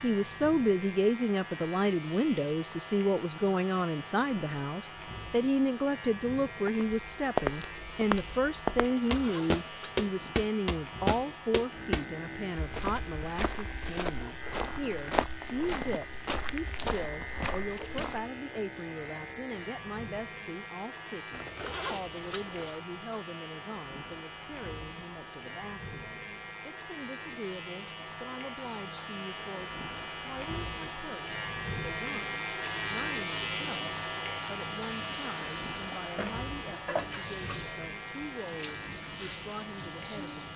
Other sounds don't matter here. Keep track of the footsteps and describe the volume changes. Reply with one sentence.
The loudness of the footsteps goes down.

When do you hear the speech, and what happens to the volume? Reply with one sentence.
You can hear the speech from 0.0 to 40.5 s, getting quieter.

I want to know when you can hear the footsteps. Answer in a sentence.
You can hear the footsteps from 6.7 to 18.2 s.